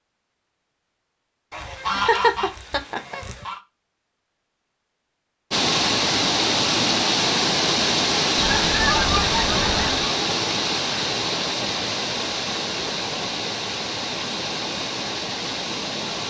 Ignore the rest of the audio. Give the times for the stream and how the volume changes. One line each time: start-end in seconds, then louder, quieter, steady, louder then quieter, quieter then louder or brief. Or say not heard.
5.5-16.2 quieter.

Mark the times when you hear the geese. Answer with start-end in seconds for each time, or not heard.
1.5-3.6, 8.3-10.1.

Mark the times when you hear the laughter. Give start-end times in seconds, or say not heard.
1.9-3.1.